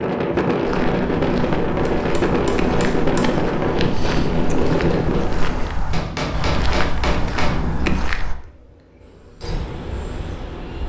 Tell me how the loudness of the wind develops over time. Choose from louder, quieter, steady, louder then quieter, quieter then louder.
quieter.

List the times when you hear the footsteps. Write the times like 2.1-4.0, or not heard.
0.6-8.3.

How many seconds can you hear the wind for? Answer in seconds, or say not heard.
11 s.